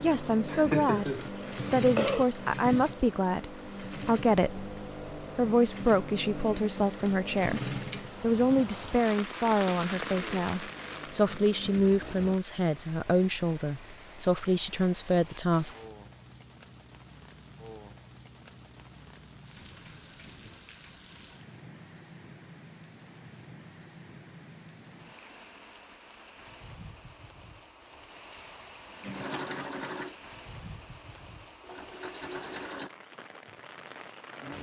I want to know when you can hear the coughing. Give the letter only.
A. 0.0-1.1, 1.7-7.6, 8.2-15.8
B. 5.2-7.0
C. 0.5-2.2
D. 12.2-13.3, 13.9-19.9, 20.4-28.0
C.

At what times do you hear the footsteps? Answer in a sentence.
You can't hear the footsteps here.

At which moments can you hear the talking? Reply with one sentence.
You can hear the talking from 0.0 to 1.1 s, from 1.7 to 7.6 s and from 8.2 to 15.8 s.